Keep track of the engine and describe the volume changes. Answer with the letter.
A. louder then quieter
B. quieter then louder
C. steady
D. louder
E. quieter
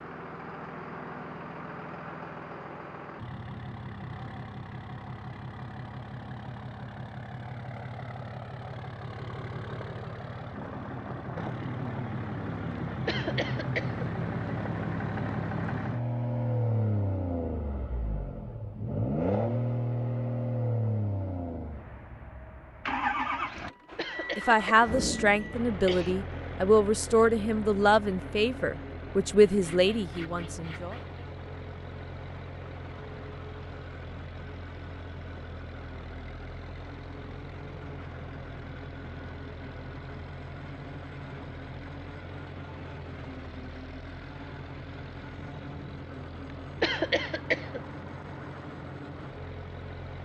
A.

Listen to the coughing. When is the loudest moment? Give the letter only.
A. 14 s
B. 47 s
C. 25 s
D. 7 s
B.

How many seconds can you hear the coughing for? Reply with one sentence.
You can hear the coughing for 4 seconds altogether.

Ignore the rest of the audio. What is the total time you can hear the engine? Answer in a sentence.
You can hear the engine for 50 seconds altogether.